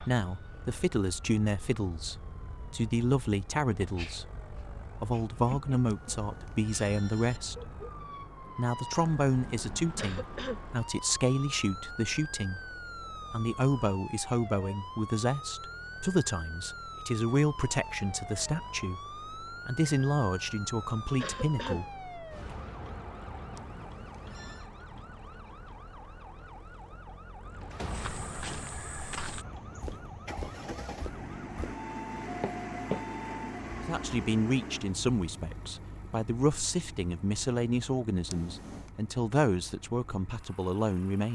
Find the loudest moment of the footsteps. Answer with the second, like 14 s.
33 s.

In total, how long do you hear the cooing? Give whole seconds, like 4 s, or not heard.
not heard.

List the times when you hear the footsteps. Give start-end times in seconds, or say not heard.
27.9-33.1.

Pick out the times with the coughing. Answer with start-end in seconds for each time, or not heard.
9.9-10.6, 21.2-21.8.